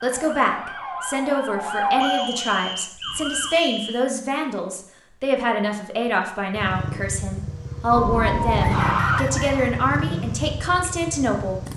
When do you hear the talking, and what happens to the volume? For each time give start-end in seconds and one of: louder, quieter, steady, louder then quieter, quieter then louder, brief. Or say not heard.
0.0-11.6 steady.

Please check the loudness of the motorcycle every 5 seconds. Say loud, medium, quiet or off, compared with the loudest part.
off, loud, loud.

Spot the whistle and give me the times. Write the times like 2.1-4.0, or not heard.
2.0-4.1, 8.8-9.8.